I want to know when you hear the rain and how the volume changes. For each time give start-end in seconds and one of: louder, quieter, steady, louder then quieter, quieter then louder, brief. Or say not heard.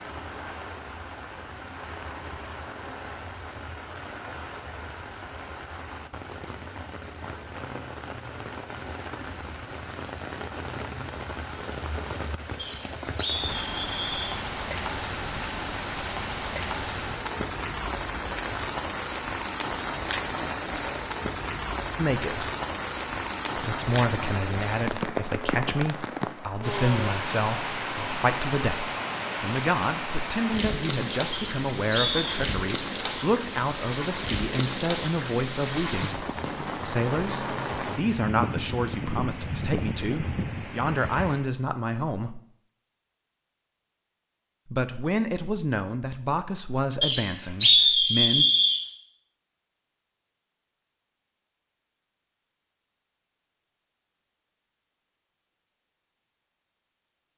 0.0-41.5 louder.